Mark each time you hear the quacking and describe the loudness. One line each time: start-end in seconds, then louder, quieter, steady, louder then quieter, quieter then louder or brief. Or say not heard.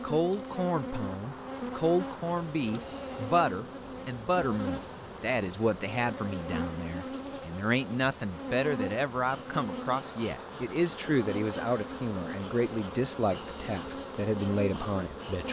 not heard.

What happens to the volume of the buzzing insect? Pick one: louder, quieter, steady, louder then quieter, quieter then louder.
steady.